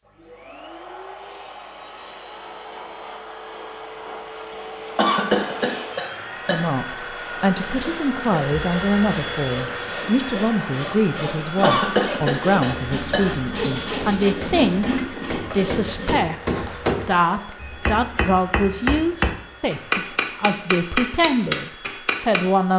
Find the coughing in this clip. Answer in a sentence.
The coughing can be heard from 5.0 to 6.6 s and from 11.6 to 13.3 s.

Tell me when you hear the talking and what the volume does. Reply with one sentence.
You can hear the talking from 6.5 to 22.7 s, at a steady volume.